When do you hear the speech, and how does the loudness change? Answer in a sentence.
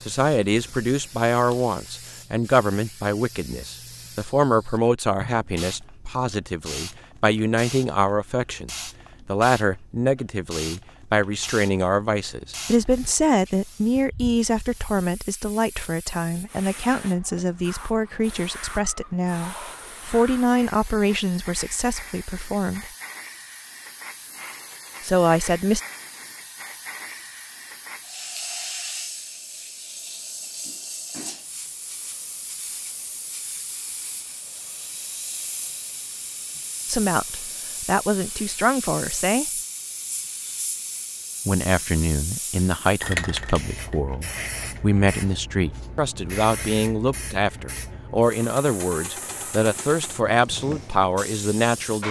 The speech can be heard from 0.1 to 22.9 s, at a steady volume; briefly from 25.0 to 25.8 s; briefly from 36.9 to 39.5 s; and from 41.5 to 52.0 s, at a steady volume.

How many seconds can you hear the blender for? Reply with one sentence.
The blender can't be heard in this clip.